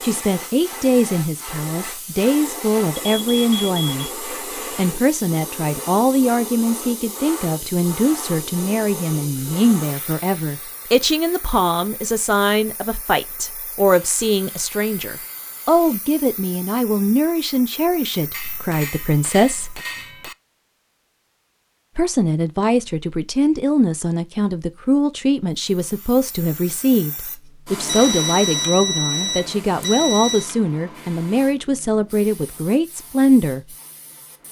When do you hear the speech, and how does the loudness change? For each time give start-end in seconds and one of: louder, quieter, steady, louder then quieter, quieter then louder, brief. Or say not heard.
0.0-19.8 steady
21.9-33.8 steady.